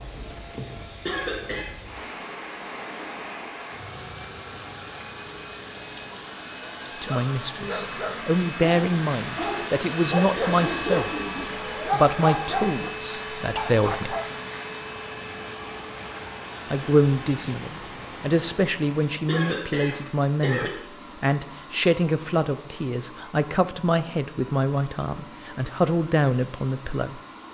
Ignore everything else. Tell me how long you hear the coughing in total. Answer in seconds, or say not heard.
2 s.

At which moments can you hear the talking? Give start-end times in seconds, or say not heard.
7.0-11.1, 11.8-14.2, 16.7-27.2.